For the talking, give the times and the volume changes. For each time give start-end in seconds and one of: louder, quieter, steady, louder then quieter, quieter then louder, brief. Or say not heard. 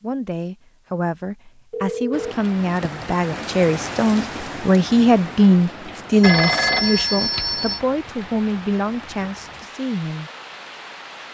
0.0-10.3 louder then quieter.